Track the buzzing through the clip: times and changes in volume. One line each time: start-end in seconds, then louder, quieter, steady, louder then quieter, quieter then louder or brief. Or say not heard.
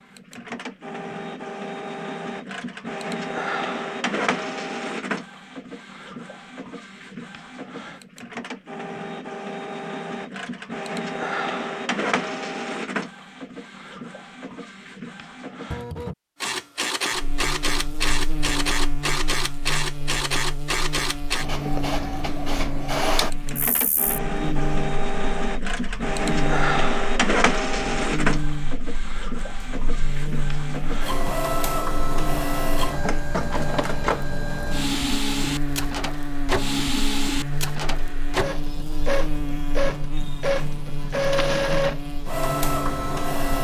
17.1-43.5 steady.